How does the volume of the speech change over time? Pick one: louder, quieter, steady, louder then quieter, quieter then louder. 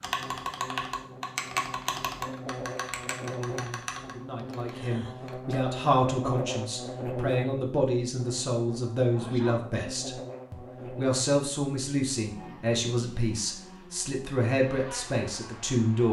steady.